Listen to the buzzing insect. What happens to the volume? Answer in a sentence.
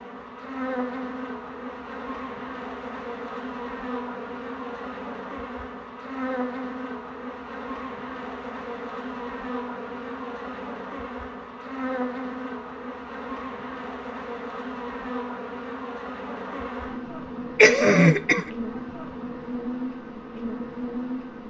The volume of the buzzing insect stays about the same.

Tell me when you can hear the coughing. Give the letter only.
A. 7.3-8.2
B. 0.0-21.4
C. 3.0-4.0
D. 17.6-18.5
D.